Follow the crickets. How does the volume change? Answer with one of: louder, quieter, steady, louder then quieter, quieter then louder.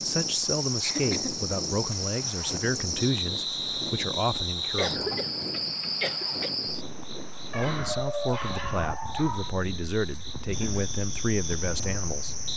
quieter then louder.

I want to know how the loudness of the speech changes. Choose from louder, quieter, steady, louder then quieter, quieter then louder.
steady.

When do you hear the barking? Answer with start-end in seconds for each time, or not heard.
7.5-9.6.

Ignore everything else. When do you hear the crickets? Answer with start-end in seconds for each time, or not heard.
0.0-12.5.